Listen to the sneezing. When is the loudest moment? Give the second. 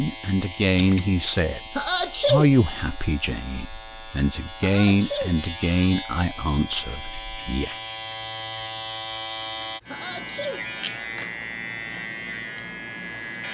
2 s.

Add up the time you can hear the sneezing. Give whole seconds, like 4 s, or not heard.
2 s.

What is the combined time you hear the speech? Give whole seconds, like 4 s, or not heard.
8 s.